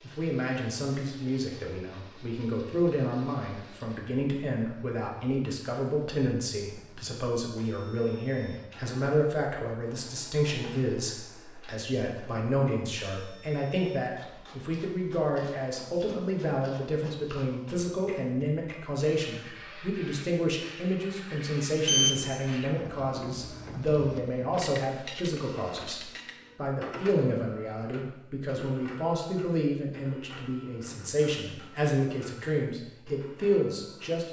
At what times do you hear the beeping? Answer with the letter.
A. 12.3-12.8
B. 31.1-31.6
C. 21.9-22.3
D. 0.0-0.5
C.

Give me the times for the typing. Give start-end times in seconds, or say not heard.
not heard.